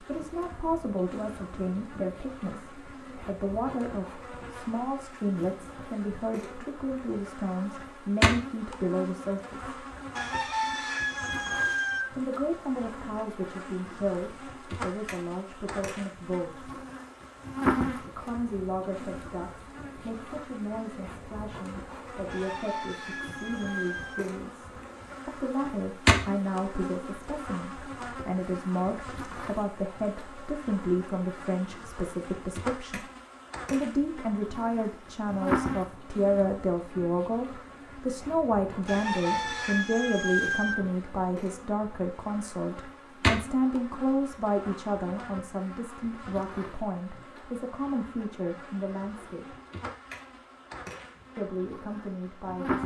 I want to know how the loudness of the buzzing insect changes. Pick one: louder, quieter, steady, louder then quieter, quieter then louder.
steady.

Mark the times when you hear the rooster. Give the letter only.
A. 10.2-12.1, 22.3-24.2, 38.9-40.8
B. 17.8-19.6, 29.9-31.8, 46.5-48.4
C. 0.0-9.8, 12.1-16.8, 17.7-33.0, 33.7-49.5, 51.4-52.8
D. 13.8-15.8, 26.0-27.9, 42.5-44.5
A.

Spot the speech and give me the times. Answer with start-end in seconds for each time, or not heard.
0.0-9.8, 12.1-16.8, 17.7-33.0, 33.7-49.5, 51.4-52.8.